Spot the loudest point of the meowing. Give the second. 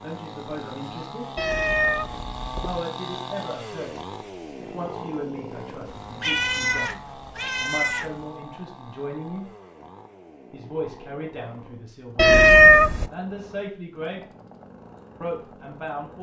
13 s.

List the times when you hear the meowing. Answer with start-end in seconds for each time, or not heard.
1.4-2.8, 5.8-8.1, 12.2-13.1.